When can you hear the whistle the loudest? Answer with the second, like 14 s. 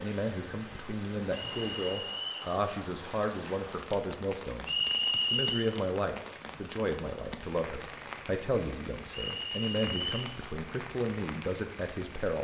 5 s.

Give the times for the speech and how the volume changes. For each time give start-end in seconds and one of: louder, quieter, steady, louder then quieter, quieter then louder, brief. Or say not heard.
0.0-12.3 steady.